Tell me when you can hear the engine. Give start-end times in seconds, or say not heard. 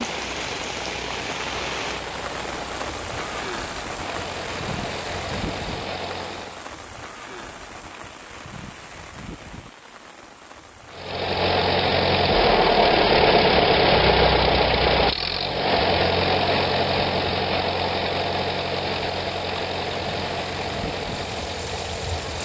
0.0-6.7, 10.9-22.4.